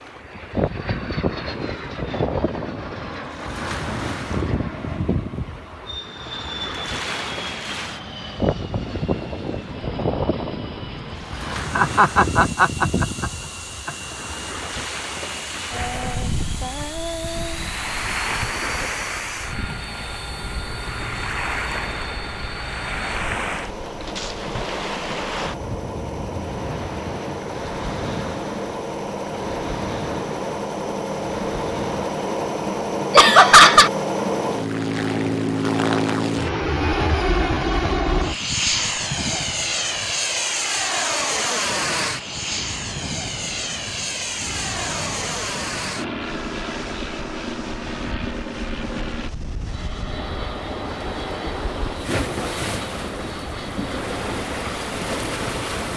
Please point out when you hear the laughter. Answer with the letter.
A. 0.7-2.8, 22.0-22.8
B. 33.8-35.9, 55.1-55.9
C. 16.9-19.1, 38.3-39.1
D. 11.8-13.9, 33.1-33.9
D.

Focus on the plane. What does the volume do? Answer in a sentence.
The loudness of the plane goes up, then down.